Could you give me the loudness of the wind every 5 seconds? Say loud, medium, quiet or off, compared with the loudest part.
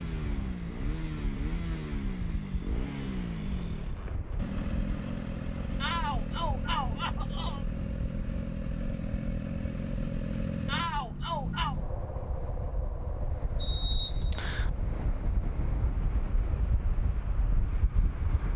medium, medium, medium, loud.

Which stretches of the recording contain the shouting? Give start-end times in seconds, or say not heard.
5.8-7.7, 10.7-11.8.